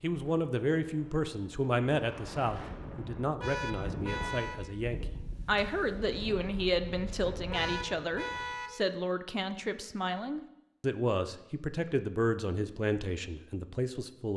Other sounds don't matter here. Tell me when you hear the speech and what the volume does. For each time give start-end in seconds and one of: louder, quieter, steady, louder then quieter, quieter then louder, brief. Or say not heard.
0.0-14.3 steady.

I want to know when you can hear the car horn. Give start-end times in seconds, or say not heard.
3.4-4.6, 7.5-8.7.